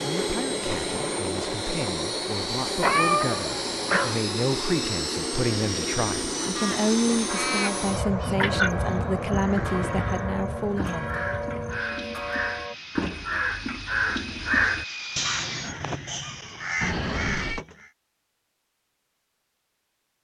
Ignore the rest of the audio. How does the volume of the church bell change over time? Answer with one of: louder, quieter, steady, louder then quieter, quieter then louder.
steady.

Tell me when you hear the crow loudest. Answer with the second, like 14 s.
15 s.